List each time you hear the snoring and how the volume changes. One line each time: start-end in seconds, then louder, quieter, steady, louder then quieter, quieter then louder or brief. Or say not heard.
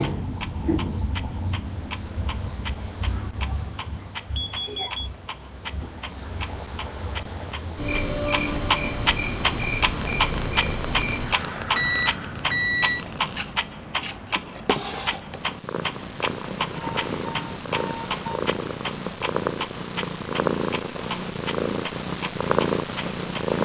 not heard.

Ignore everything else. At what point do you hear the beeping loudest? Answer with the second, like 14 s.
13 s.